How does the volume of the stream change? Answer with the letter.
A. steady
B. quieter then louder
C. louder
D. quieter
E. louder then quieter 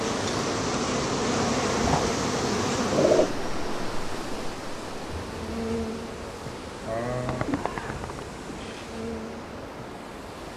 D.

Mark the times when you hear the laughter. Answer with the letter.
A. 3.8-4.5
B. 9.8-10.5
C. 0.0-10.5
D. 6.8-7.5
D.